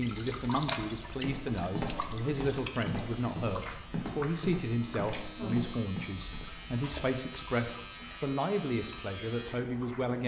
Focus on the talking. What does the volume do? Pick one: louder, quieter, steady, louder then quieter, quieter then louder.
steady.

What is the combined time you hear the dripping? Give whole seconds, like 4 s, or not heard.
10 s.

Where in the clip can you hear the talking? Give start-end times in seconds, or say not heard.
0.0-10.2.